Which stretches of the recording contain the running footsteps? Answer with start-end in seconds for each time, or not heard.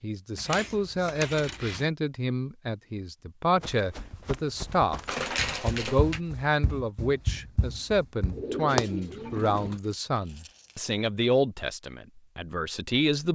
3.6-8.8.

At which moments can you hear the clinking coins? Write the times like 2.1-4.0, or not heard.
0.3-1.9, 5.0-6.2, 9.6-10.9.